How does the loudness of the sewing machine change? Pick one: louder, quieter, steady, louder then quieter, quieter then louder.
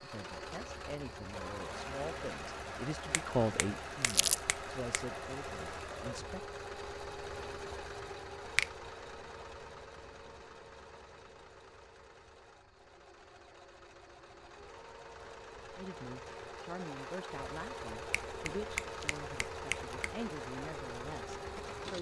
quieter then louder.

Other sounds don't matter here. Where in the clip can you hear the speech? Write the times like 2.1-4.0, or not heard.
0.0-6.4, 15.8-21.9.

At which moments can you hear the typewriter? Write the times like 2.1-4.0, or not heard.
not heard.